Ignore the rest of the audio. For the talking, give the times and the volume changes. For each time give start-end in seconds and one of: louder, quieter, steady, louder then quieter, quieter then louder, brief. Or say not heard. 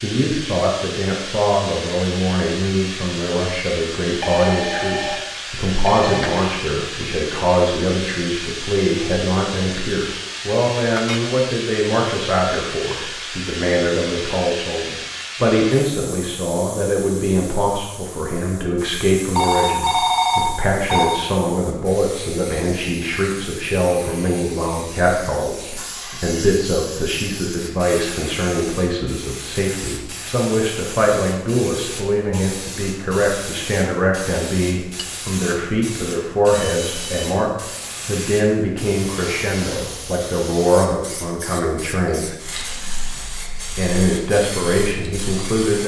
0.0-45.8 steady.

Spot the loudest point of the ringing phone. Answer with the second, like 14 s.
20 s.